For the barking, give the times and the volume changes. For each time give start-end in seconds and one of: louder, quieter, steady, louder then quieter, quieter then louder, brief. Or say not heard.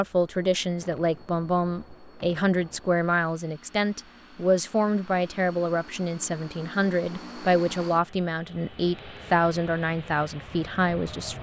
not heard.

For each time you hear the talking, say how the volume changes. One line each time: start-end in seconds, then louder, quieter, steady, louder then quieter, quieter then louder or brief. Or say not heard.
0.0-11.3 steady.